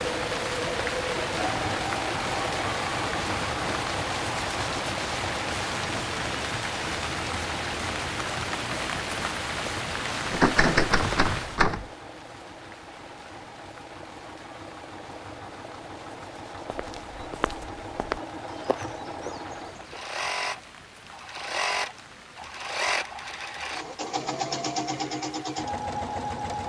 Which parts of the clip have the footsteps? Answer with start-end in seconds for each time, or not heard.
16.7-20.2.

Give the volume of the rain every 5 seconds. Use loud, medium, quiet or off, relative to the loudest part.
loud, loud, medium, quiet, quiet, quiet.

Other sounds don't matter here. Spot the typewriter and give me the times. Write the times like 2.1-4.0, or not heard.
10.3-11.8.